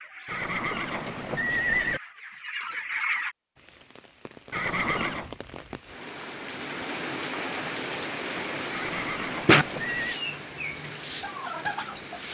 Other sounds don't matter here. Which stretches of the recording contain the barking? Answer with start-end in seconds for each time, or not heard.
not heard.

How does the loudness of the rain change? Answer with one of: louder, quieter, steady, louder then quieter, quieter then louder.
louder then quieter.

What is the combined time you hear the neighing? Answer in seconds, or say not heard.
4 s.